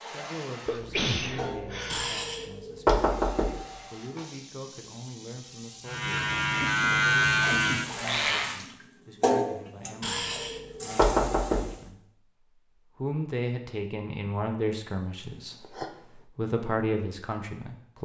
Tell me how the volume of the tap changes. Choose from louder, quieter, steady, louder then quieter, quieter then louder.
quieter then louder.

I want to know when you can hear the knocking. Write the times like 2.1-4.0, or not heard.
1.9-3.6, 10.0-11.7.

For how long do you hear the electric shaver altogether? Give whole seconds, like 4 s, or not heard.
3 s.